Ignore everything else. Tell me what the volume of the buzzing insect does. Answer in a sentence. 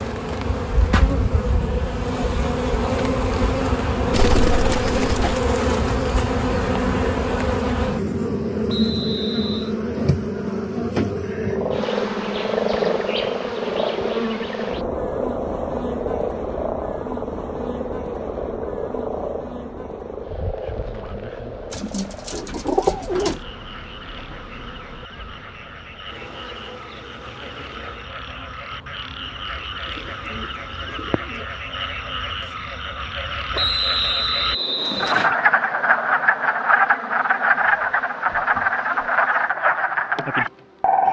The volume of the buzzing insect goes down.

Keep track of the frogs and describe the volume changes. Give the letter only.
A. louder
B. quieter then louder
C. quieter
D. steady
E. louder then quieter
B.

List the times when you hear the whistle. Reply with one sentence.
You can hear the whistle from 8.7 to 9.8 s and from 33.5 to 35.3 s.